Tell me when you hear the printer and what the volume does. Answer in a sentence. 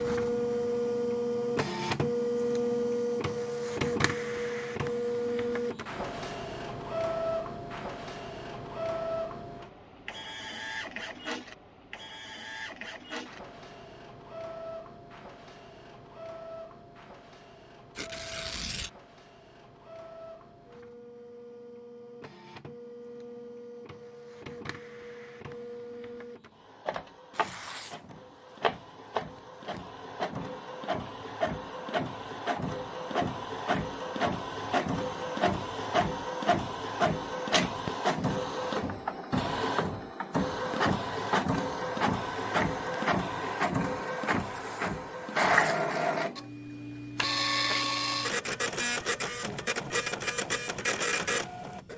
The printer can be heard from 0.0 to 51.9 s, getting quieter then louder.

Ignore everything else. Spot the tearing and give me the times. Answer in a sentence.
The tearing can be heard from 17.9 to 18.9 s and from 27.3 to 29.9 s.